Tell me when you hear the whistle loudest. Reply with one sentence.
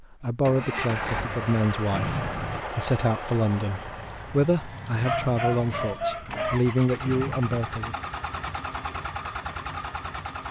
The volume of the whistle peaks at 2 seconds.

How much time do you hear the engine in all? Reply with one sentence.
You can hear the engine for 10 seconds altogether.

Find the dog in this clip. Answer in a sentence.
You can hear the dog from 5.0 to 6.6 s.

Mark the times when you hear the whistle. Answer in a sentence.
You can hear the whistle from 1.9 to 2.6 s and from 7.0 to 7.5 s.